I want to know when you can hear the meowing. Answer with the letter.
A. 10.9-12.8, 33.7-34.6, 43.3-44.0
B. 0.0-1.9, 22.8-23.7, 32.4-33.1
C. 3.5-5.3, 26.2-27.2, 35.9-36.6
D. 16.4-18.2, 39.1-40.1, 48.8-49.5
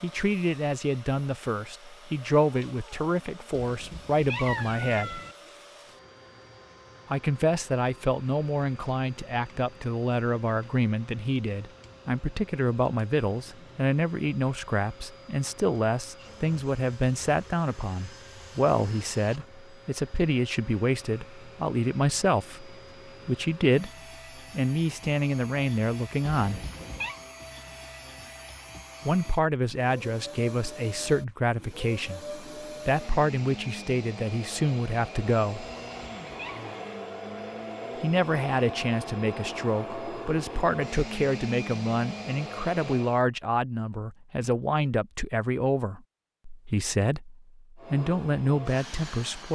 C.